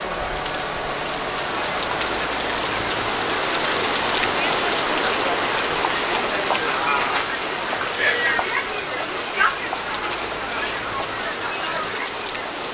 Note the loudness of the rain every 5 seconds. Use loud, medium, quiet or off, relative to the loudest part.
loud, loud, medium.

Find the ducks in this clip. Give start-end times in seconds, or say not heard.
not heard.